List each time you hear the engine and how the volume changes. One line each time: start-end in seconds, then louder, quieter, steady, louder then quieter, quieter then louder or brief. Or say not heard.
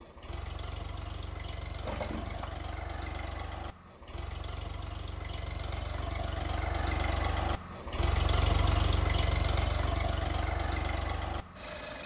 0.0-12.0 louder.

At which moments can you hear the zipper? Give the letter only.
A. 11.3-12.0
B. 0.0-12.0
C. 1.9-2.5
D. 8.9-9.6
C.